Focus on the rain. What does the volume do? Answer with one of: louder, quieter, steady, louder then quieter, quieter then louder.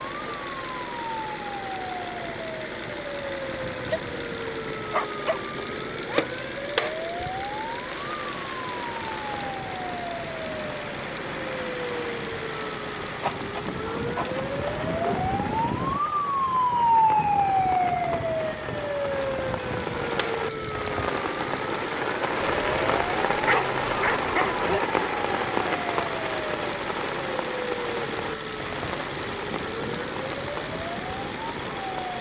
louder then quieter.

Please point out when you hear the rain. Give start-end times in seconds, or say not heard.
7.8-32.1.